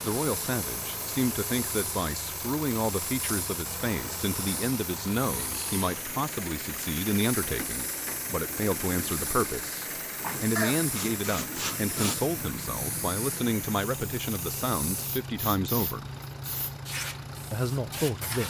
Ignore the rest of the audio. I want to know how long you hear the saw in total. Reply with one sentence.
You can hear the saw for 2 seconds altogether.